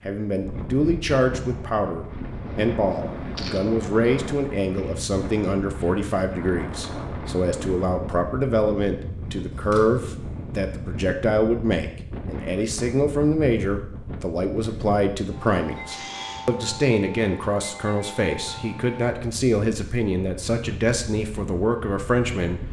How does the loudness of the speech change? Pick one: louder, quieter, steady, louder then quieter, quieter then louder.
steady.